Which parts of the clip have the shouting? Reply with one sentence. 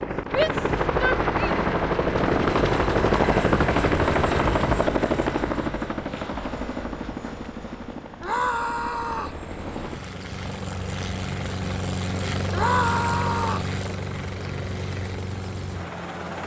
The shouting can be heard from 0.3 to 1.6 s, from 8.2 to 9.4 s and from 12.5 to 13.7 s.